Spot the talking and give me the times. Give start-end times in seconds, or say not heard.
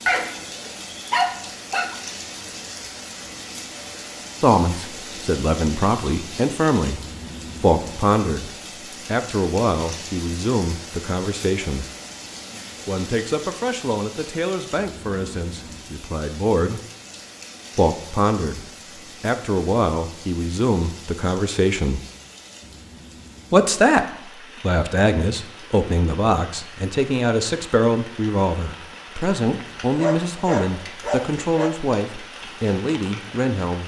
4.4-7.0, 7.6-11.8, 12.8-16.8, 17.8-22.0, 23.5-33.8.